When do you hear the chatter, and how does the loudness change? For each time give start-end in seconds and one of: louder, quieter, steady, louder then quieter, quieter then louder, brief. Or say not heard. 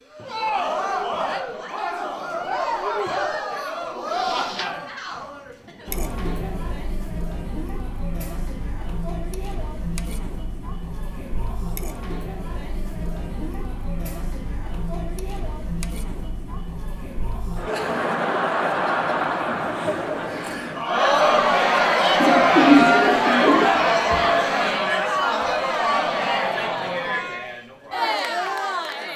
0.1-29.1 quieter then louder.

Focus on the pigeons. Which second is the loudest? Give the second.
23 s.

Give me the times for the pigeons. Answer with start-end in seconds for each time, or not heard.
1.8-4.7, 22.2-23.9.